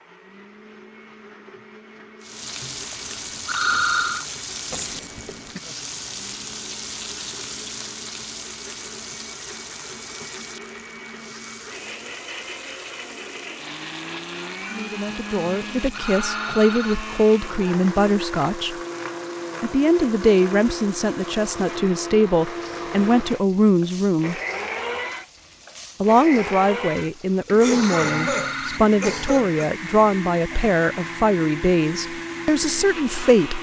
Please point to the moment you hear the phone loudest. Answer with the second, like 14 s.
4 s.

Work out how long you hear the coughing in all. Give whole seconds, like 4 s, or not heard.
3 s.